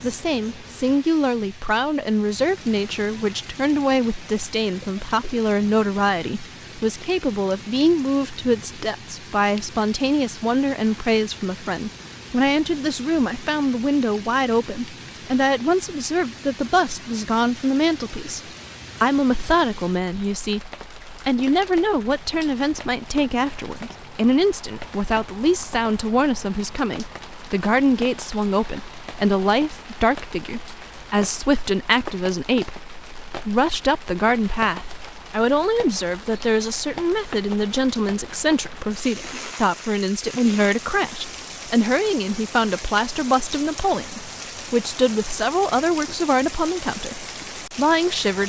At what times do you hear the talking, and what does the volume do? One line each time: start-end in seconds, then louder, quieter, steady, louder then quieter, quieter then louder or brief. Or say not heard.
0.0-18.4 steady
19.0-48.4 steady.